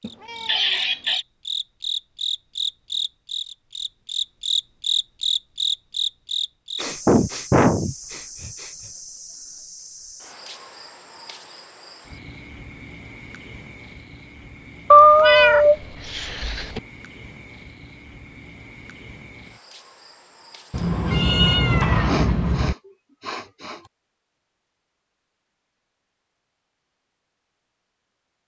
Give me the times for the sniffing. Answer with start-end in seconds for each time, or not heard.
6.8-8.7, 22.1-23.8.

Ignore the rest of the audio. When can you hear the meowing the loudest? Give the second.
15 s.